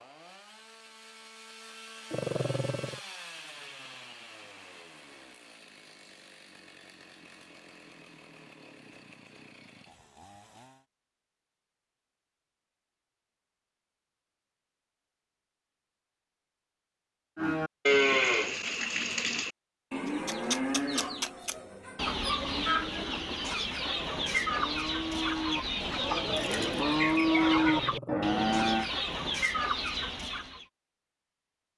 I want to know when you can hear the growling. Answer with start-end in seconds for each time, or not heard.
2.1-3.0, 27.4-28.4.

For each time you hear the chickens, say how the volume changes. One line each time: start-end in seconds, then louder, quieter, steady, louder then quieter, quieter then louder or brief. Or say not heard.
20.1-30.6 steady.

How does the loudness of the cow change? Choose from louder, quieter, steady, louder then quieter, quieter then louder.
quieter then louder.